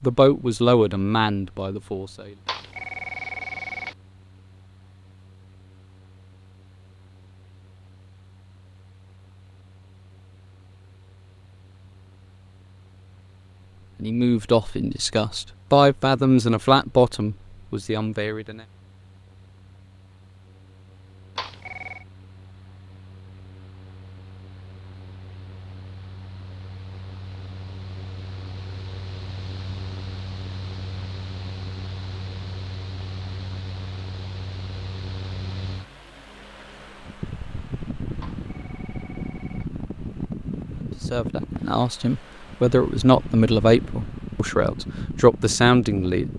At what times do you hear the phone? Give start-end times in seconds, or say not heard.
2.5-4.0, 21.4-22.1, 38.2-39.7.